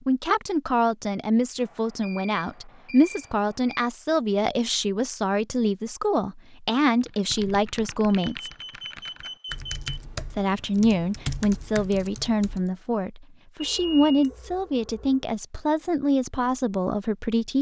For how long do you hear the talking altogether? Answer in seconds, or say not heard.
16 s.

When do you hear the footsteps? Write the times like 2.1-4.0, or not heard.
not heard.